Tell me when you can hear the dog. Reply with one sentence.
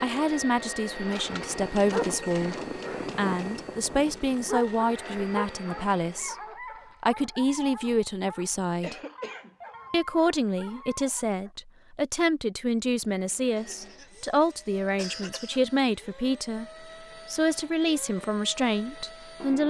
The dog can be heard from 1.2 to 11.6 s.